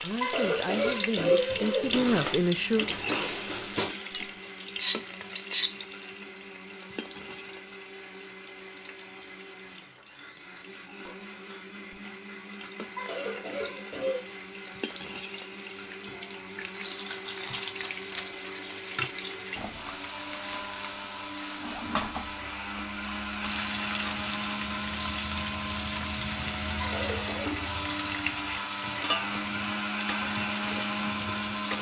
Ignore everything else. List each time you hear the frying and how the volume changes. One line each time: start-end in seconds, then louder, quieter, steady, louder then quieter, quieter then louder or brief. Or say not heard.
0.0-31.7 quieter then louder.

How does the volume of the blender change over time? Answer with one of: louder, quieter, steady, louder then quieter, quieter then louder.
louder.